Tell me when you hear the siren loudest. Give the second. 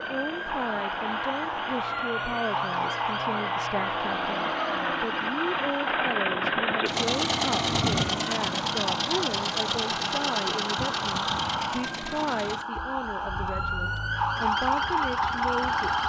15 s.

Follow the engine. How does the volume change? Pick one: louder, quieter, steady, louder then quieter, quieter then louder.
louder then quieter.